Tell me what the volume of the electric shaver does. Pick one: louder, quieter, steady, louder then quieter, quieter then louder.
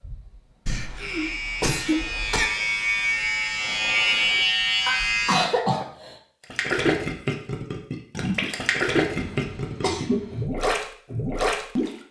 louder.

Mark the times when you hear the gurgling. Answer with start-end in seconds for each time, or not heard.
6.5-11.9.